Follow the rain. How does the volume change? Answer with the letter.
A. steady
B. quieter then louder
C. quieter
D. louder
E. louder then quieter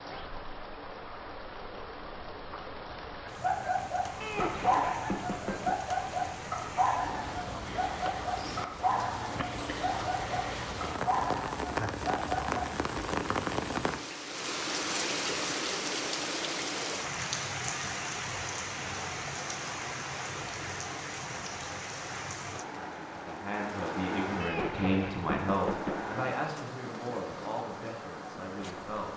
E.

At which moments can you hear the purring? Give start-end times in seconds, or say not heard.
not heard.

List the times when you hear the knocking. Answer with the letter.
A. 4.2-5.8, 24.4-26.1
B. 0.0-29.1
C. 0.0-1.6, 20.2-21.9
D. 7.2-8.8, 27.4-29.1
A.